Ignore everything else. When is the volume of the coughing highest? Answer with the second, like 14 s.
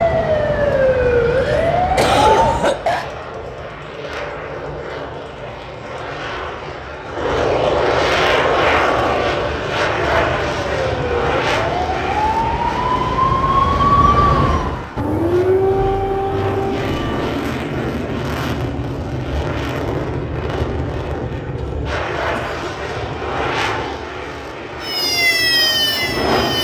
2 s.